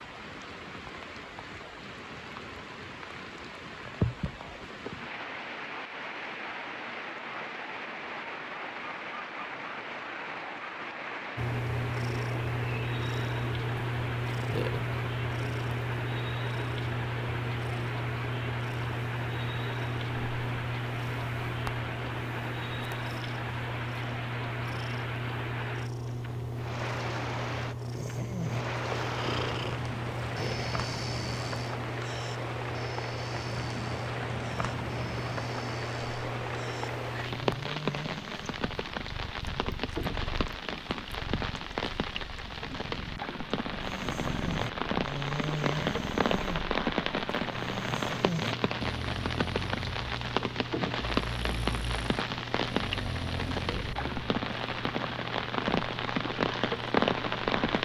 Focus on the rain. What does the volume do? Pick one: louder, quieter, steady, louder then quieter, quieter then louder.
louder.